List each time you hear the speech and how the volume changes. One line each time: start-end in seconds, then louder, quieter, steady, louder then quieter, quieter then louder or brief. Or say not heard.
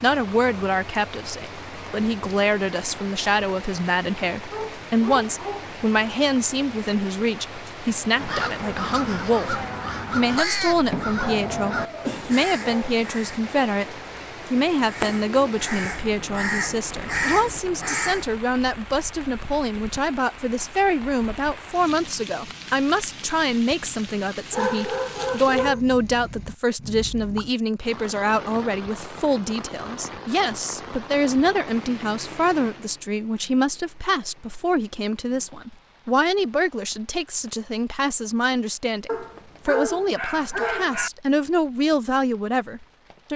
0.0-43.3 steady.